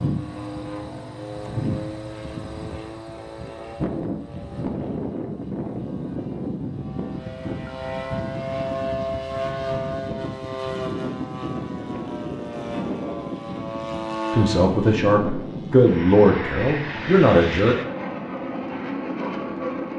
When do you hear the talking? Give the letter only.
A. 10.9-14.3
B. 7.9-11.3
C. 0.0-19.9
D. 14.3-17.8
D.